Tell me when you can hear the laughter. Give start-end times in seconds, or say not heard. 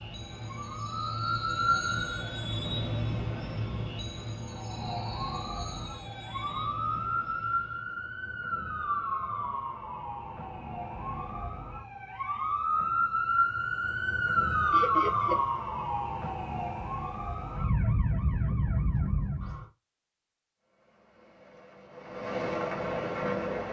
14.7-15.4.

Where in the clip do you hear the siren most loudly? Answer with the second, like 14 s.
15 s.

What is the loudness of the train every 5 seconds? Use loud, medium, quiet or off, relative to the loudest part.
loud, medium, off, off, loud.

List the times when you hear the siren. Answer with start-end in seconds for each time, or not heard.
0.1-2.2, 4.4-19.6.